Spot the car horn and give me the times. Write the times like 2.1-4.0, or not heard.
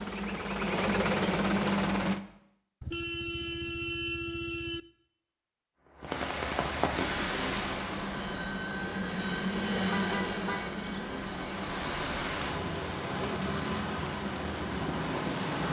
2.8-4.8, 9.8-10.8.